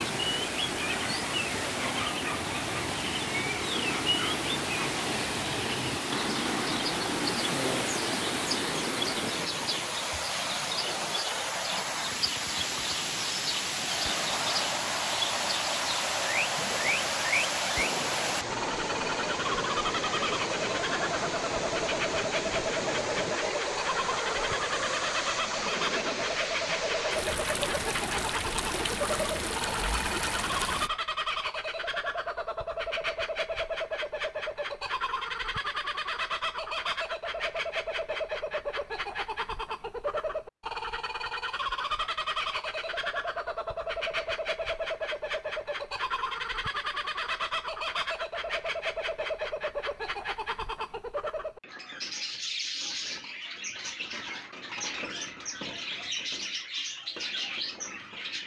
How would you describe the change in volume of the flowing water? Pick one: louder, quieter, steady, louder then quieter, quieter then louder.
steady.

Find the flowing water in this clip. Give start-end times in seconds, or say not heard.
0.0-30.9.